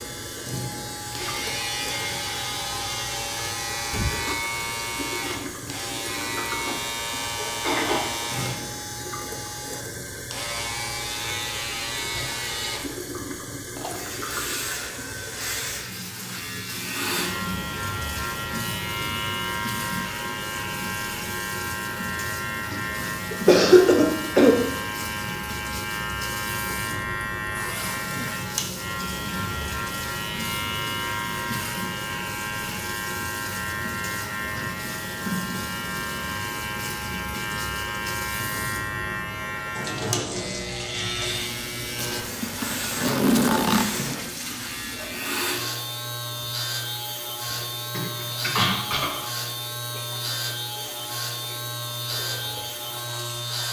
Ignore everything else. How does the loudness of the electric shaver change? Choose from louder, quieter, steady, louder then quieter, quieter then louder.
steady.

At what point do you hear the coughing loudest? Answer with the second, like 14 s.
24 s.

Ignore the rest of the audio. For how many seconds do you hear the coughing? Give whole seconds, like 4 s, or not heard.
5 s.